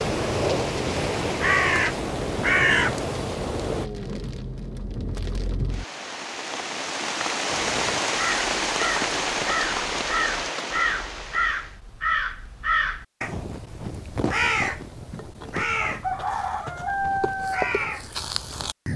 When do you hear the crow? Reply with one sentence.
You can hear the crow from 0.0 to 3.9 s and from 7.5 to 18.9 s.